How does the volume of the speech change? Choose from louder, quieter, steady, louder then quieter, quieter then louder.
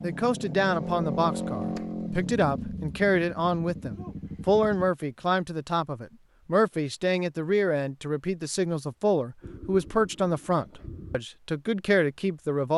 steady.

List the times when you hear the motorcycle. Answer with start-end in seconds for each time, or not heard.
0.0-4.9, 9.4-11.2.